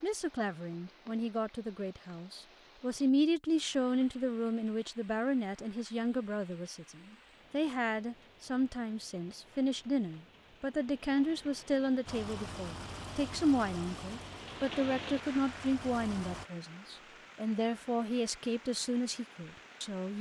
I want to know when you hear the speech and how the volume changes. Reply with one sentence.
The speech can be heard from 0.0 to 20.1 s, at a steady volume.